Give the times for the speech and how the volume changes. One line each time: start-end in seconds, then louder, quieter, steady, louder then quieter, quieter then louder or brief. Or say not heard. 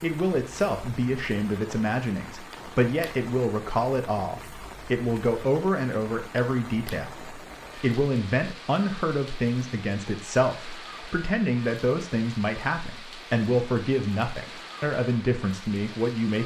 0.0-16.4 steady.